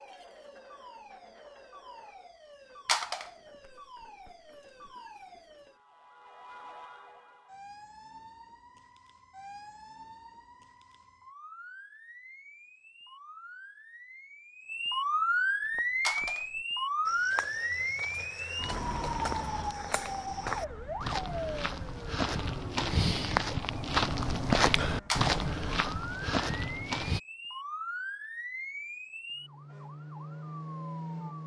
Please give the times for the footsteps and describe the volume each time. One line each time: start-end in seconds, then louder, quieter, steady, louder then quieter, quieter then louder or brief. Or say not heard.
15.6-27.2 louder.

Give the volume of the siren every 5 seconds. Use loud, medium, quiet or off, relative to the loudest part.
quiet, quiet, quiet, loud, medium, medium, medium.